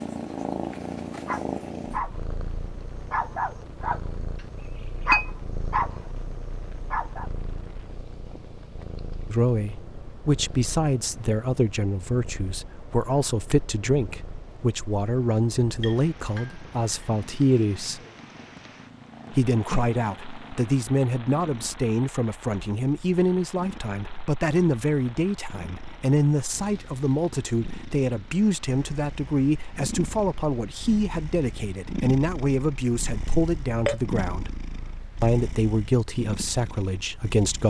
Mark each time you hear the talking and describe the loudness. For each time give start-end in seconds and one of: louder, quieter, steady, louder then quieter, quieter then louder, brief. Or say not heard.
9.2-18.0 steady
19.3-34.5 steady
35.2-37.6 brief.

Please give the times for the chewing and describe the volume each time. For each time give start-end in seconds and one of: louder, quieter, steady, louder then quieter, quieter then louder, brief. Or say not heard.
not heard.